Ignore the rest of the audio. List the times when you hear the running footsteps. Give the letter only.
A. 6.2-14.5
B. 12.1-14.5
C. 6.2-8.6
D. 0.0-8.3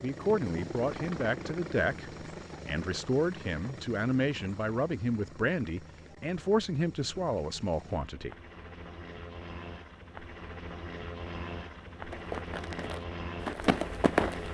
B.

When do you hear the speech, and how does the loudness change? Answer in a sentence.
The speech can be heard from 0.0 to 8.3 s, at a steady volume.